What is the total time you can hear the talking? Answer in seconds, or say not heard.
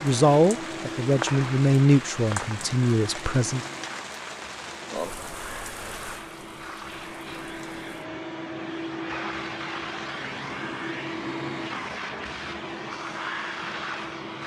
4 s.